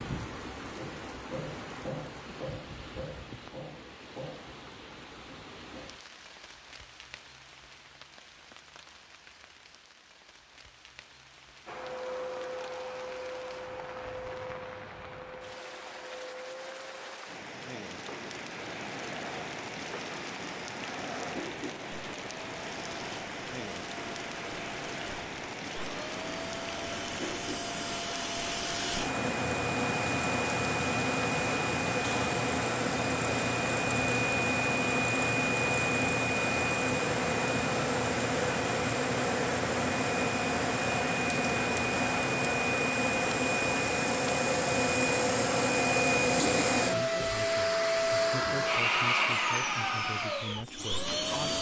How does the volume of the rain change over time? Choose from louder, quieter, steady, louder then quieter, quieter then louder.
quieter then louder.